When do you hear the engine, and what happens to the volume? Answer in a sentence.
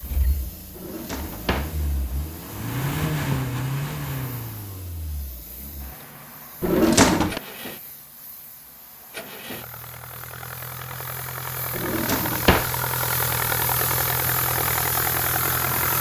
You can hear the engine from 0.0 to 15.9 s, getting quieter then louder.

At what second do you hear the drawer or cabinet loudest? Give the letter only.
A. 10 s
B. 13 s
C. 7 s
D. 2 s
C.